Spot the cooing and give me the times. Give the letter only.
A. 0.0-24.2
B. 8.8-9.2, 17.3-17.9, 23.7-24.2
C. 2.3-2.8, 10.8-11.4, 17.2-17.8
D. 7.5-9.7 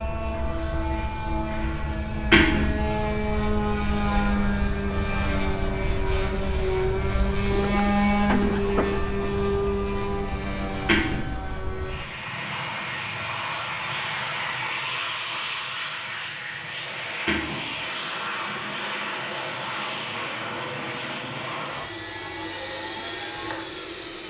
D.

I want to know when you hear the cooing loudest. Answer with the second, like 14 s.
8 s.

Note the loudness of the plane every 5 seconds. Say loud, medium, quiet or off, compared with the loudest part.
loud, loud, medium, medium, medium.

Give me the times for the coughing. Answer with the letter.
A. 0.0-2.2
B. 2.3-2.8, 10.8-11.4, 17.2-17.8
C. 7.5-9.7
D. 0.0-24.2
B.